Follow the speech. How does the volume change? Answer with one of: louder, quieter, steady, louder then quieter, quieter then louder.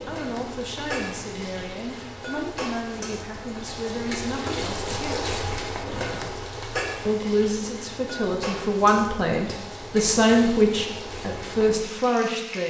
louder.